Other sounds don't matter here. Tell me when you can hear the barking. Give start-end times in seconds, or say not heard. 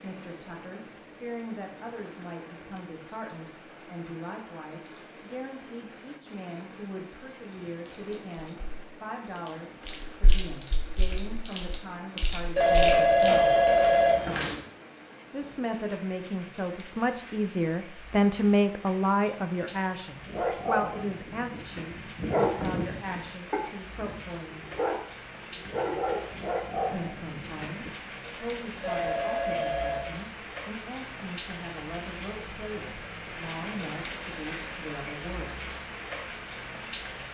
20.2-27.9.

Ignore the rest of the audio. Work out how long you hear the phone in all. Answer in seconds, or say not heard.
3 s.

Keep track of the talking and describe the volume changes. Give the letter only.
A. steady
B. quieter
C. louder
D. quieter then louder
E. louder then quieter
E.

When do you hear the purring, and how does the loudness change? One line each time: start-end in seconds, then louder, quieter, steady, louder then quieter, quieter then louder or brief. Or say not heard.
not heard.